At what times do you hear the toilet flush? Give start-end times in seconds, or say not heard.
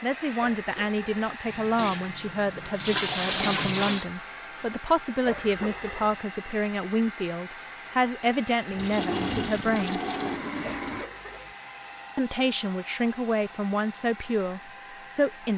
1.4-4.0, 8.7-11.1.